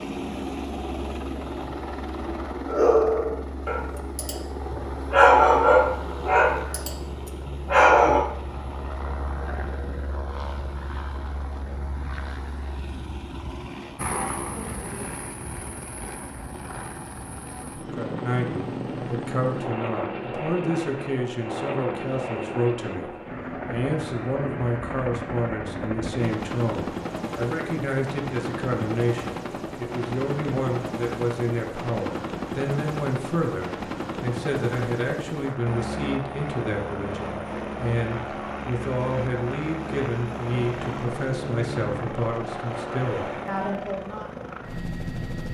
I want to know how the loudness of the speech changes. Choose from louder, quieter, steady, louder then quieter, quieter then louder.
steady.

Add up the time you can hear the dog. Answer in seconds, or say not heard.
5 s.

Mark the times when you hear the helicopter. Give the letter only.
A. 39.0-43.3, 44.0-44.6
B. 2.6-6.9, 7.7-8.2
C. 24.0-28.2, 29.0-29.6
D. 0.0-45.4
D.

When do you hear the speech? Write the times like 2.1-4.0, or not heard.
17.8-44.3.